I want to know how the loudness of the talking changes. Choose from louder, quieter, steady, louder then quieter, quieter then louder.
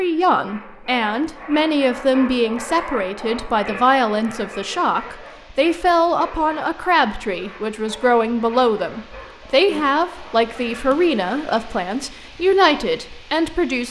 steady.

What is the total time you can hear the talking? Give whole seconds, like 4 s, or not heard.
14 s.